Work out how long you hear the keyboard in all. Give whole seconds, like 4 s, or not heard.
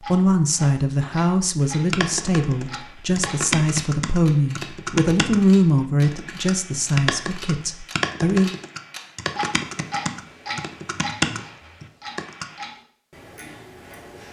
11 s.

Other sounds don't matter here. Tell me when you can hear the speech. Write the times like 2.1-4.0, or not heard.
0.1-8.5.